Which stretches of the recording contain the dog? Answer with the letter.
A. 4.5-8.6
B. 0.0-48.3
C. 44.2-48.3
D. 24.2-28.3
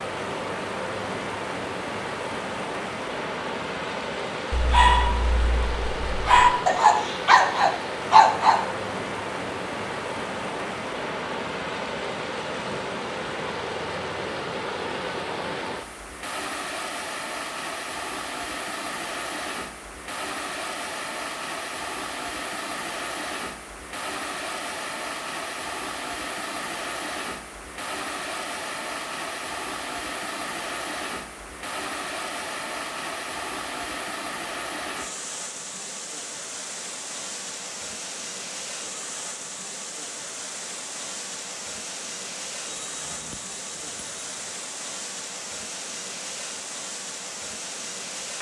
A.